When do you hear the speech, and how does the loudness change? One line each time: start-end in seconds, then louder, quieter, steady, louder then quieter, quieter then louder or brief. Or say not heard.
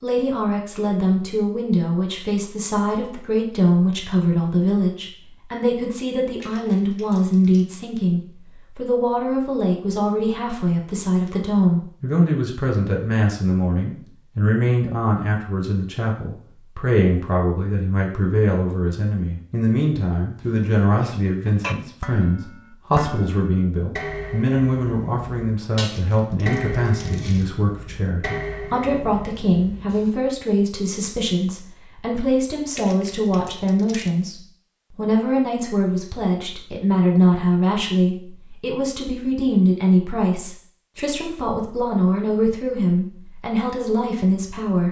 0.0-44.8 steady.